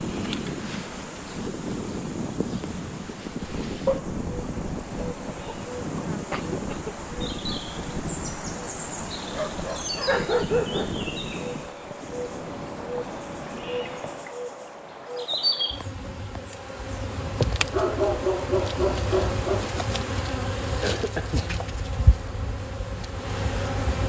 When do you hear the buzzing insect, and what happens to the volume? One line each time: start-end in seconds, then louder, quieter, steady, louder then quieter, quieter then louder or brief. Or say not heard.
0.0-24.0 louder.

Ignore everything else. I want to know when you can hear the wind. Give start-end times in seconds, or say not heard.
0.0-14.2.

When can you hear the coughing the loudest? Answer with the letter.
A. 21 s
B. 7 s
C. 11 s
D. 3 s
A.